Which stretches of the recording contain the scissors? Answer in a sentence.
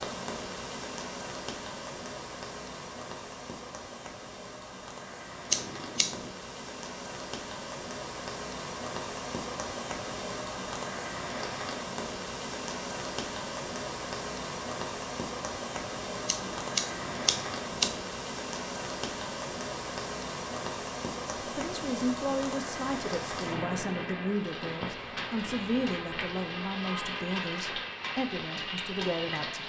The scissors can be heard from 5.5 to 6.3 s and from 16.2 to 18.0 s.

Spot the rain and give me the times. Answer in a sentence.
You can hear the rain from 0.0 to 29.6 s.